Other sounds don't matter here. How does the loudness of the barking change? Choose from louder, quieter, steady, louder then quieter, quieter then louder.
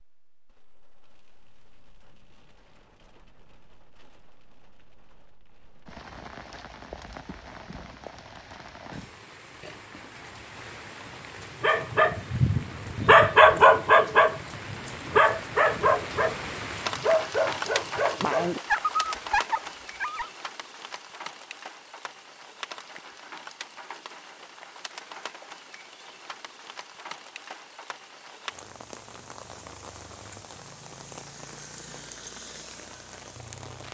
quieter.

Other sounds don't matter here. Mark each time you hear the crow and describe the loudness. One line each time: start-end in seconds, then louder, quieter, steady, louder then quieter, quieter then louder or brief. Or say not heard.
not heard.